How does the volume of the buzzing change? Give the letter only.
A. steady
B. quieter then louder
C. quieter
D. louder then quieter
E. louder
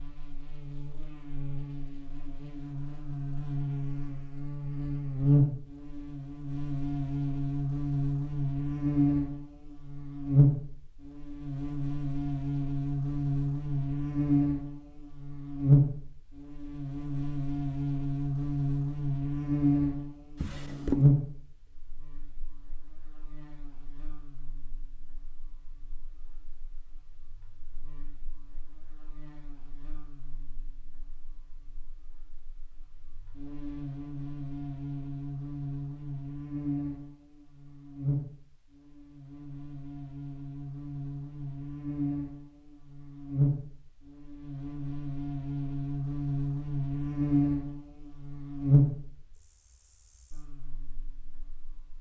B.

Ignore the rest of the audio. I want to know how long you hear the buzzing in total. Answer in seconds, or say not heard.
52 s.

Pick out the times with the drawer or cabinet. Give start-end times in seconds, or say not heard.
20.4-21.1.